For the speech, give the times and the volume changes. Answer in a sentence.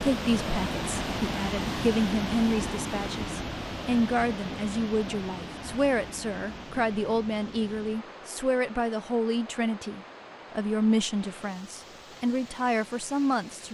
You can hear the speech from 0.0 to 13.6 s, at a steady volume.